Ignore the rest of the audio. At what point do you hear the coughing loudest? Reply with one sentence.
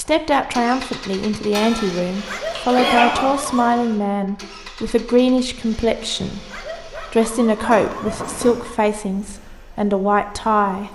The loudest moment of the coughing is at 3 seconds.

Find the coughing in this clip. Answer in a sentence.
You can hear the coughing from 1.5 to 3.3 s and from 7.7 to 8.6 s.